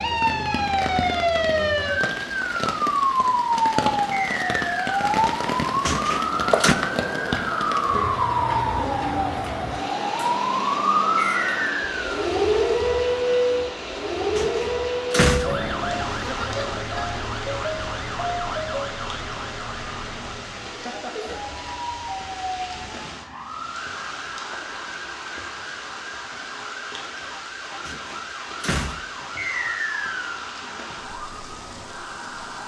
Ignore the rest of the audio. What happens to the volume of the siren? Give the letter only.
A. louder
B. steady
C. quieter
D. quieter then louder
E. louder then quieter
C.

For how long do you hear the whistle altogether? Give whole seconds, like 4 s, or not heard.
3 s.